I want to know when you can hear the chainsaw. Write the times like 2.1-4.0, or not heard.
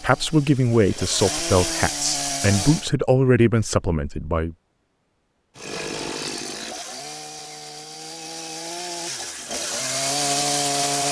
0.0-2.9, 5.5-11.0.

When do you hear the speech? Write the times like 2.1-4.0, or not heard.
0.0-4.5.